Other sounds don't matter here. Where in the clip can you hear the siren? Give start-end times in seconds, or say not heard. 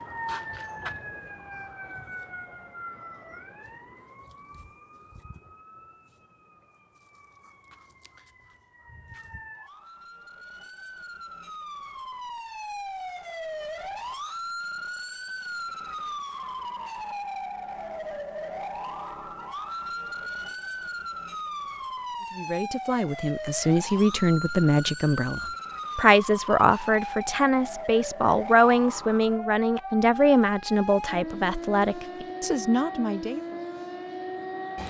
0.0-34.8.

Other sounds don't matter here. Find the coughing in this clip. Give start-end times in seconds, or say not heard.
not heard.